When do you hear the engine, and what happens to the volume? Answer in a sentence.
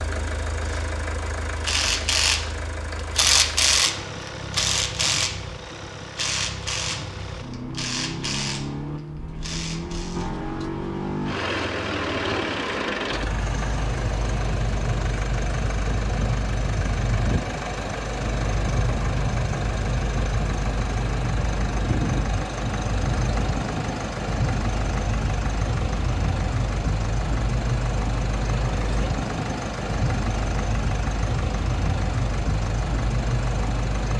You can hear the engine from 0.0 to 34.1 s, getting louder.